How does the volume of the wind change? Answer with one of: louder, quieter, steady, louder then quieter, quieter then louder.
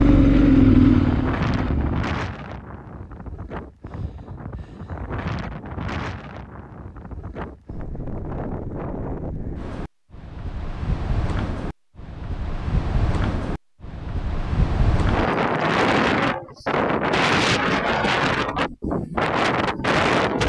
louder.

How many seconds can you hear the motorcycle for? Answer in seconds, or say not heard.
2 s.